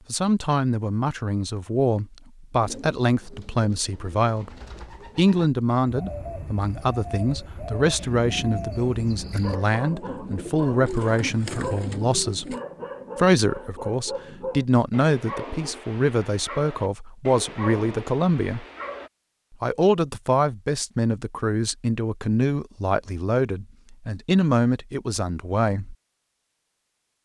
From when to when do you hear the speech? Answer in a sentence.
You can hear the speech from 0.1 to 4.5 s, from 5.2 to 12.6 s, from 13.2 to 18.6 s and from 19.6 to 25.9 s.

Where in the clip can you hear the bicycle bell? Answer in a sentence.
The bicycle bell can't be heard in this clip.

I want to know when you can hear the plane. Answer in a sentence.
The plane can't be heard in this clip.